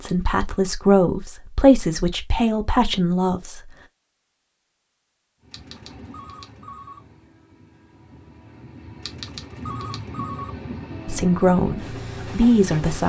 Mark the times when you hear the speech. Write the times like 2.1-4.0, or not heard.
0.0-3.7, 11.1-13.0.